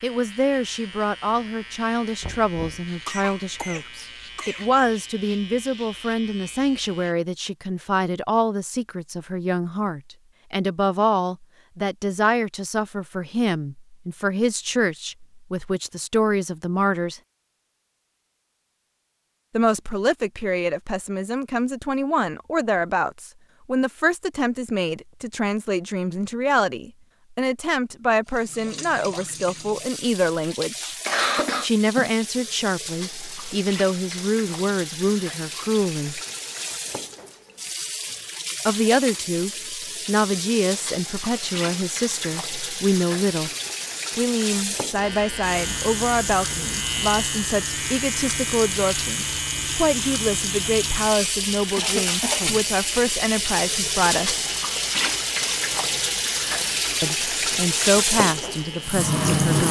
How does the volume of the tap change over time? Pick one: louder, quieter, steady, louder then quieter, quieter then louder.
louder.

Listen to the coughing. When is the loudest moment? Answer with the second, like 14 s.
31 s.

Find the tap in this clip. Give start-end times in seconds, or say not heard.
28.2-59.6.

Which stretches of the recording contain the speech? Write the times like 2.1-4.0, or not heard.
0.0-17.2, 19.5-30.9, 31.6-36.2, 38.6-43.5, 44.1-54.5, 57.0-59.6.